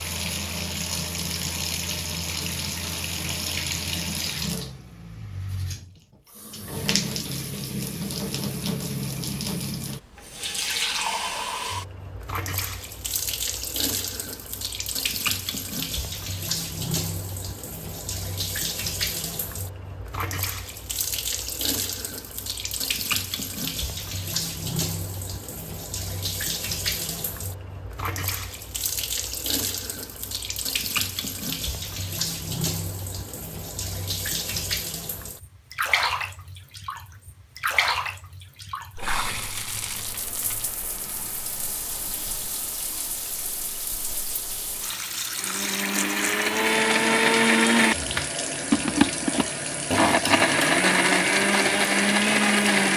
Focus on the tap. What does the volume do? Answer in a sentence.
The volume of the tap stays about the same.